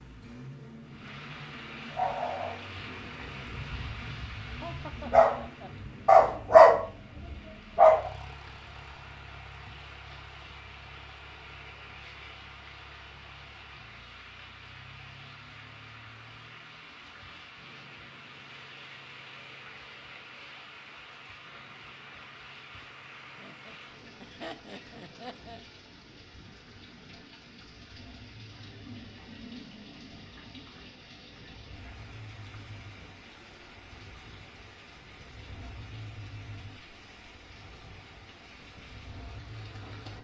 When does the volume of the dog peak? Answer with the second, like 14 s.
7 s.